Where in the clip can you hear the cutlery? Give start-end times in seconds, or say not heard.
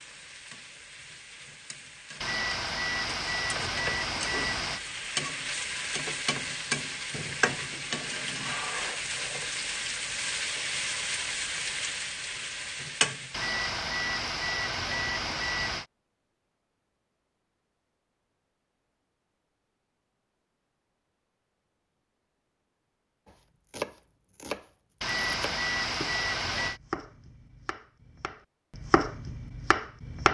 not heard.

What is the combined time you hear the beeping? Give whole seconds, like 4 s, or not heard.
7 s.